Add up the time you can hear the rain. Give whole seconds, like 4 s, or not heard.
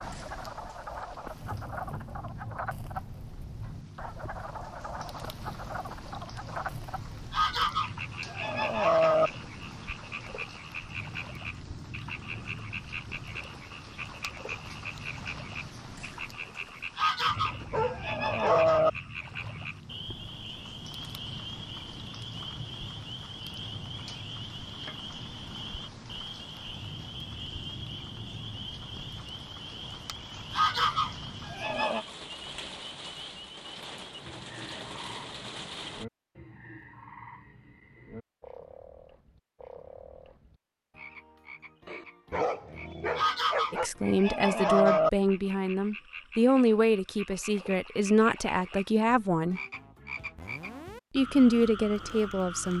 36 s.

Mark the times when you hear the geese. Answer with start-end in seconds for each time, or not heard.
7.3-9.3, 16.9-18.9, 30.5-32.0, 43.1-45.1.